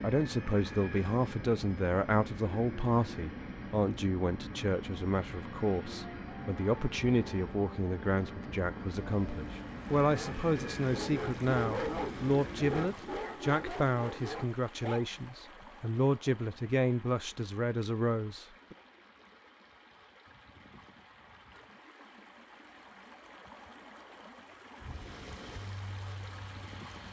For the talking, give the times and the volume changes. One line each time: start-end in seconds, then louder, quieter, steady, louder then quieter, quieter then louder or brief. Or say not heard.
0.0-18.8 steady.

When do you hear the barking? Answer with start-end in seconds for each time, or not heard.
10.1-15.1.